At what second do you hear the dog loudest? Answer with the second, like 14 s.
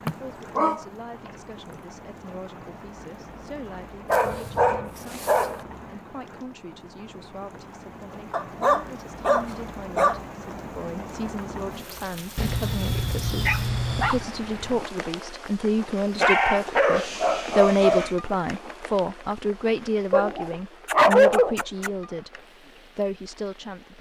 21 s.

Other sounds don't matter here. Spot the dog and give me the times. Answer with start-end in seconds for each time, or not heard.
0.1-1.3, 4.0-5.7, 8.3-10.2, 12.3-14.2, 16.1-18.1, 20.1-21.9.